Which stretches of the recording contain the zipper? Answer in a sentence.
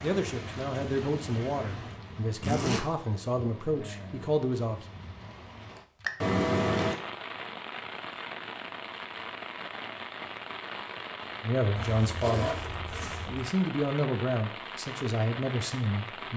The zipper can be heard from 2.4 to 2.9 s, from 6.2 to 7.0 s and from 11.8 to 13.5 s.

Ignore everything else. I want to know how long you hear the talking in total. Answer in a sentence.
The talking can be heard for 9 seconds in total.